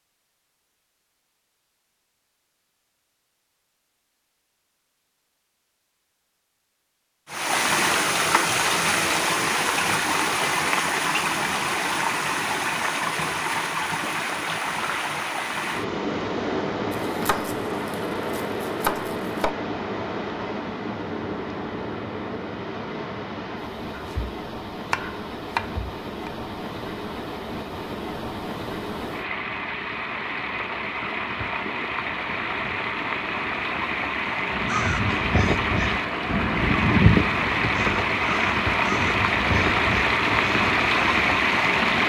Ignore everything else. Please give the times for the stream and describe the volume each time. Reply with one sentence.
You can hear the stream from 7.2 to 42.0 s, getting quieter then louder.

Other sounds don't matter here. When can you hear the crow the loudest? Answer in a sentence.
The loudest moment of the crow is at 37 seconds.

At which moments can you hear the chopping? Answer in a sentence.
You can hear the chopping from 16.9 to 19.5 s, from 23.9 to 24.3 s and from 24.9 to 26.3 s.